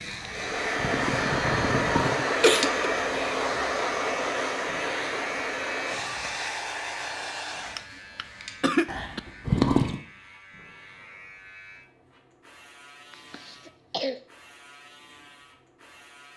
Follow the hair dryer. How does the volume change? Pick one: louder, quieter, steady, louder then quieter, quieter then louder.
quieter.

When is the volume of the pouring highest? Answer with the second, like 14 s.
10 s.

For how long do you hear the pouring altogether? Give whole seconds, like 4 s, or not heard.
3 s.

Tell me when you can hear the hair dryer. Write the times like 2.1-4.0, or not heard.
0.0-7.9.